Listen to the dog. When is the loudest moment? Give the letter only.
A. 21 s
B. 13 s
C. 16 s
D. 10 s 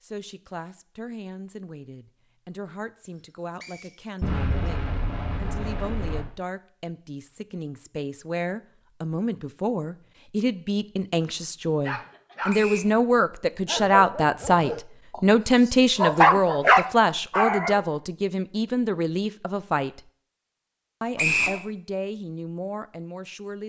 C.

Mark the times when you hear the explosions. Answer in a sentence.
You can hear the explosions from 4.2 to 6.2 s.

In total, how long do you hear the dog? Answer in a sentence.
The dog can be heard for 5 seconds in total.